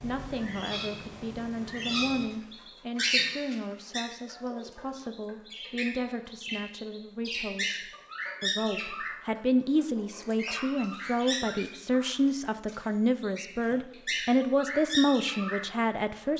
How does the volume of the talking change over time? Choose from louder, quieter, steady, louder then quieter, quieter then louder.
louder.